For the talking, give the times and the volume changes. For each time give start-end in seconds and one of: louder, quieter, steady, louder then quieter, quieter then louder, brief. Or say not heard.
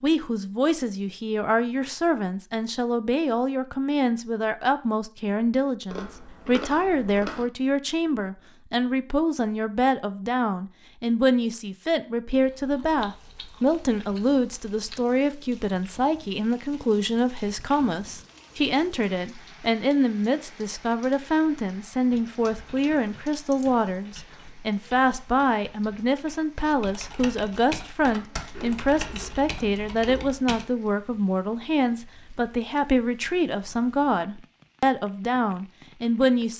0.0-36.5 steady.